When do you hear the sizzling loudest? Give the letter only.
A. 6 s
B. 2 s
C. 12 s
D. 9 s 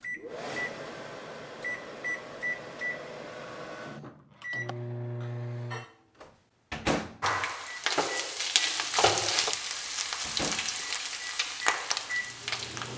D.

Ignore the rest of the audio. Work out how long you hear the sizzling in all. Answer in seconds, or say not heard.
6 s.